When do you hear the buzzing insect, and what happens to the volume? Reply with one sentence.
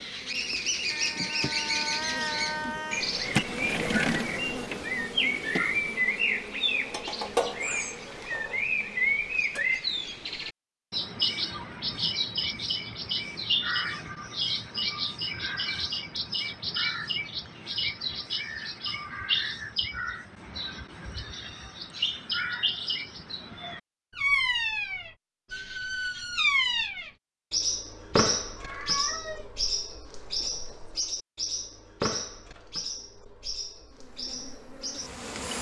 You can hear the buzzing insect from 0.0 to 9.8 s, getting louder then quieter; and briefly from 33.9 to 35.5 s.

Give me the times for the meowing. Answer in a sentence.
The meowing can be heard from 0.8 to 3.1 s and from 28.1 to 29.5 s.